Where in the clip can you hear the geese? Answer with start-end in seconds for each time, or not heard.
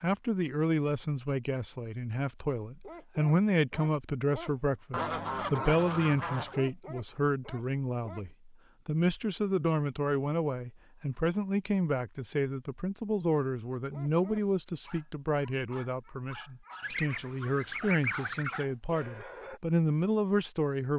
4.9-6.6, 16.8-18.6.